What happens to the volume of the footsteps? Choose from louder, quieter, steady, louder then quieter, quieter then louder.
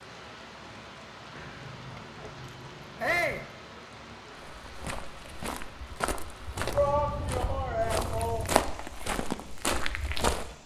louder.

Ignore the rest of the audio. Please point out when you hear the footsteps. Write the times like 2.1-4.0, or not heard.
4.5-10.6.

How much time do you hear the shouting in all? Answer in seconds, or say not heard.
2 s.